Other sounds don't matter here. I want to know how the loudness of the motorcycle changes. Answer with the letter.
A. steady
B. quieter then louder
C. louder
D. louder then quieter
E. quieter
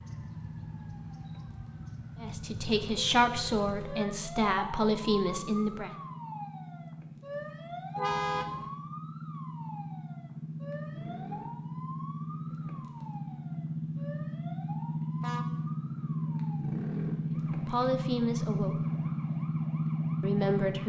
C.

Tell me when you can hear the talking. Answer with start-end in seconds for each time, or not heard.
2.2-5.9, 17.6-18.9, 20.2-20.8.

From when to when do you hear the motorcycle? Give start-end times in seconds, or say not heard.
0.0-20.8.